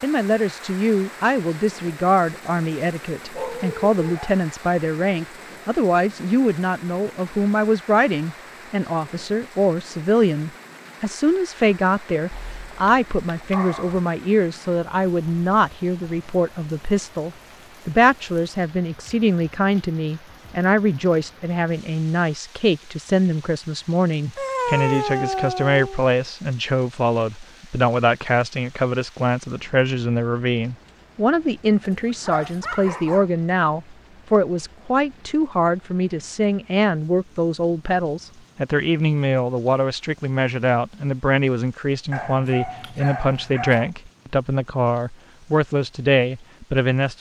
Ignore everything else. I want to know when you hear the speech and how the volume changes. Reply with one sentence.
You can hear the speech from 0.0 to 47.1 s, at a steady volume.